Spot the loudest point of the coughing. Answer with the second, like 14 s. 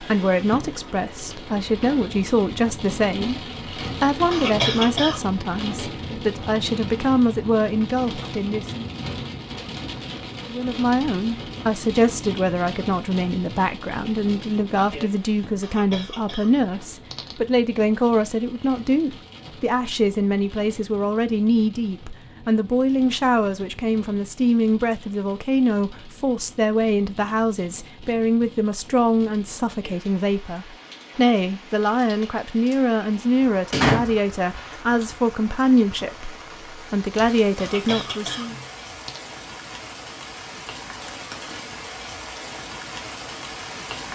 5 s.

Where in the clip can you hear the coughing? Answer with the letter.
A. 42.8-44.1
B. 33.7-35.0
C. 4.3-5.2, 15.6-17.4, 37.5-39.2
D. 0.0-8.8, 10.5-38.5
C.